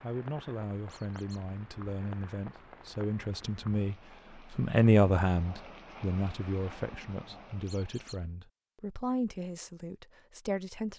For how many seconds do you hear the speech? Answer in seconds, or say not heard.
11 s.